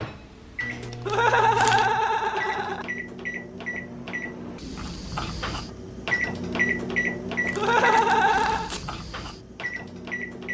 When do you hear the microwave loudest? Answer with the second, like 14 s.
7 s.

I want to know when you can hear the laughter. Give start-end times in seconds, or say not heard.
1.1-2.9, 7.5-8.7.